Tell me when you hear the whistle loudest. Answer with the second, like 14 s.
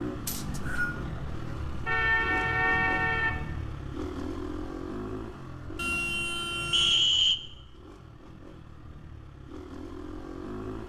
7 s.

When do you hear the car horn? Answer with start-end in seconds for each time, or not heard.
1.9-3.4, 5.8-7.0.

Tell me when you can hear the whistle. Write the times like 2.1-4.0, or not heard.
0.2-0.9, 6.7-7.3.